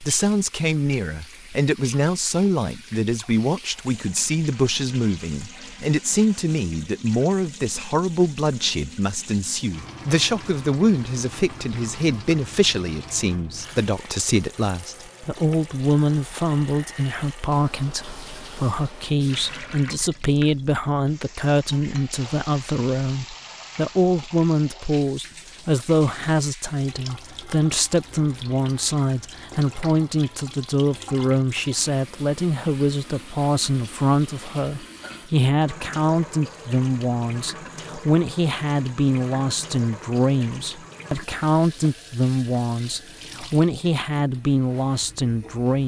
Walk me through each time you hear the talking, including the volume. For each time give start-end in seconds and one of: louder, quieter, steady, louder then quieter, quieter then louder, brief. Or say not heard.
0.0-45.8 steady.